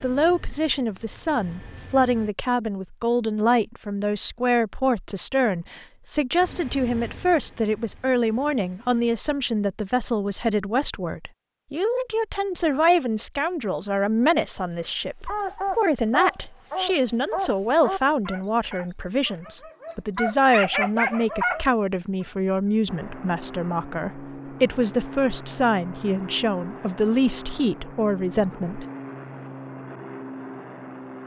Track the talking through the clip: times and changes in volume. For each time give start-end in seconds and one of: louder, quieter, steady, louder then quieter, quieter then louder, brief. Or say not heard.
0.0-28.9 steady.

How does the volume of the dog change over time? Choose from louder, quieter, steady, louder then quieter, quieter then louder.
quieter then louder.